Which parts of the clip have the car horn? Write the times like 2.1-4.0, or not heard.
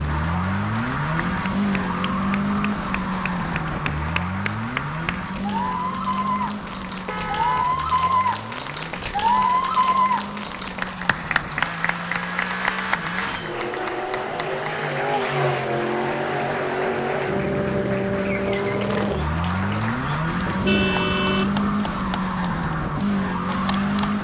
7.0-7.7, 20.4-21.7.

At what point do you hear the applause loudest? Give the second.
10 s.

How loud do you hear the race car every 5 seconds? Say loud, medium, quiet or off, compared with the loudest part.
loud, medium, medium, loud, loud.